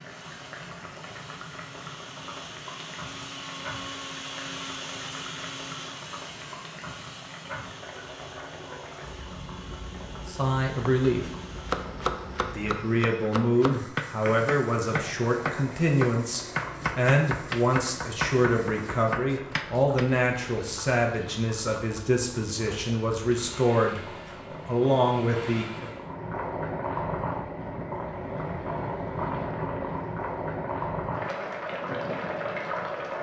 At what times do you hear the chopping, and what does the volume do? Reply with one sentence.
The chopping can be heard from 10.8 to 20.1 s, at a steady volume.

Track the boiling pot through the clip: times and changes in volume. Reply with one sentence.
You can hear the boiling pot from 0.0 to 33.1 s, getting louder.